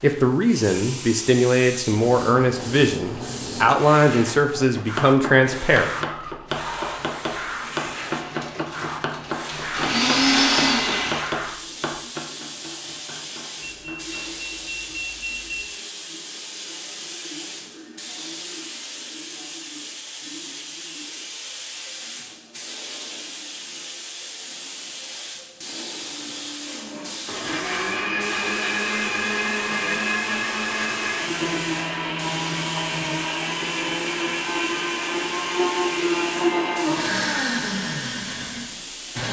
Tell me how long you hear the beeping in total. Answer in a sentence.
The beeping can be heard for 2 seconds in total.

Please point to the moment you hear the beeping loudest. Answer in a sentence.
The volume of the beeping peaks at 15 seconds.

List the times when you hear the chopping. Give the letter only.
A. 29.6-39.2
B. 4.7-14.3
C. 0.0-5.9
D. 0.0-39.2
B.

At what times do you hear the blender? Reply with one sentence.
You can hear the blender from 8.1 to 11.3 s and from 26.6 to 39.2 s.